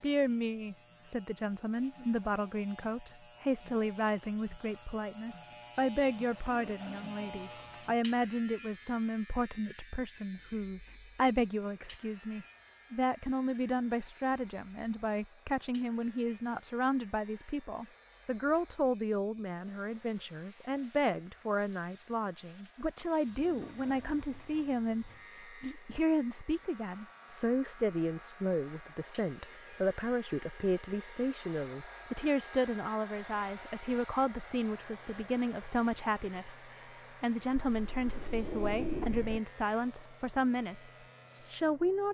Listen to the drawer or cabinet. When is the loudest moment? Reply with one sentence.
The loudest moment of the drawer or cabinet is at 39 seconds.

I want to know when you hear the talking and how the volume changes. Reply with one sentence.
The talking can be heard from 0.0 to 42.1 s, at a steady volume.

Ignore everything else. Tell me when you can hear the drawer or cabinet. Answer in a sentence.
You can hear the drawer or cabinet from 37.7 to 39.4 s.